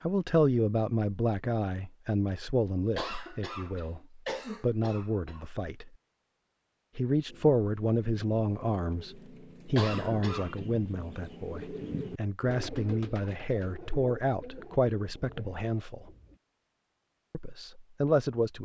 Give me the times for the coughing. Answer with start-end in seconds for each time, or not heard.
3.0-5.5, 9.8-10.6.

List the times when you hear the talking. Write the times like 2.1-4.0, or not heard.
0.0-5.9, 7.0-16.1, 17.3-18.5.